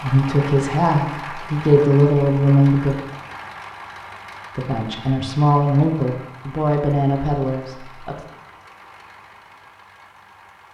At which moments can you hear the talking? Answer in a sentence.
The talking can be heard from 0.0 to 3.0 s and from 4.5 to 8.2 s.